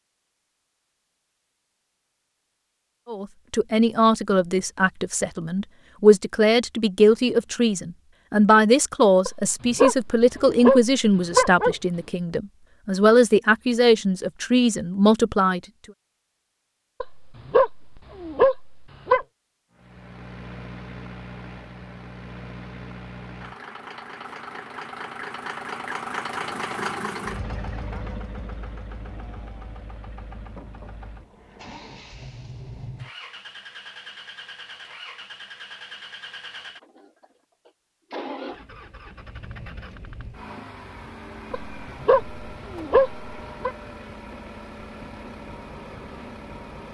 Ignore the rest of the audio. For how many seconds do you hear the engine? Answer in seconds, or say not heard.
27 s.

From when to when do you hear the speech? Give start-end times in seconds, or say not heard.
3.0-15.6.